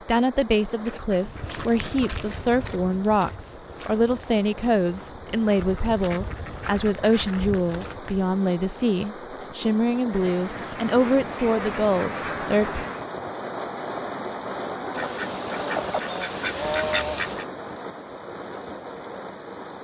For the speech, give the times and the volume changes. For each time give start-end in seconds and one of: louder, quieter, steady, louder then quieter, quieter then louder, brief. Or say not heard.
0.1-12.8 steady.